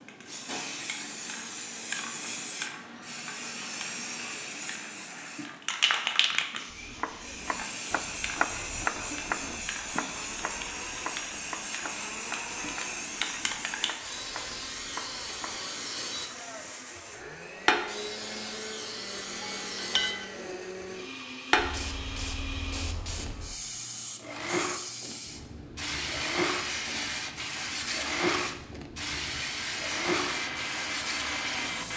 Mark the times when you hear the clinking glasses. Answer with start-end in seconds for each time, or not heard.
19.4-20.3.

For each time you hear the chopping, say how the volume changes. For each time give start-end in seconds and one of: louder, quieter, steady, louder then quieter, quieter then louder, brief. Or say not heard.
6.7-15.6 quieter.